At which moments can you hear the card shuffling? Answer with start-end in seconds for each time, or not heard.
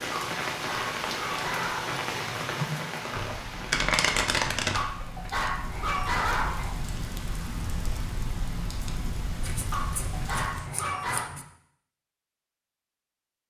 3.1-4.8, 9.4-11.4.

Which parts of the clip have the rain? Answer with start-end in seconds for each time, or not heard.
0.0-10.7.